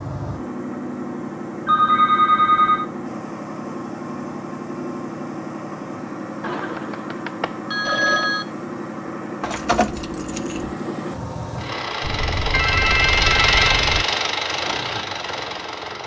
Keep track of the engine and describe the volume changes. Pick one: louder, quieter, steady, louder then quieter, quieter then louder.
louder.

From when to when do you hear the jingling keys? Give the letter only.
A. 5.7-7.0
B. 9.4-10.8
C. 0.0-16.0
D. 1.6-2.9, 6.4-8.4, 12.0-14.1
B.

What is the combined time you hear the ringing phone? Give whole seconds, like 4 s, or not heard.
5 s.